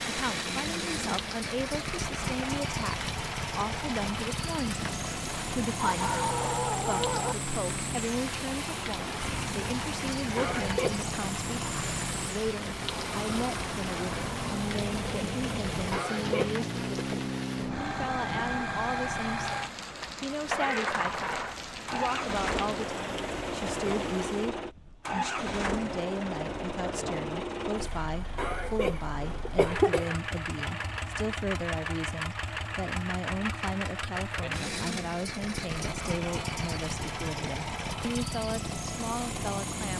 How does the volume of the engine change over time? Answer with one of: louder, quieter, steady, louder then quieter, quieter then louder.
steady.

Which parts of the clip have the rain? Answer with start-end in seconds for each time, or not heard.
0.0-24.6.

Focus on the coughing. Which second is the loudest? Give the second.
30 s.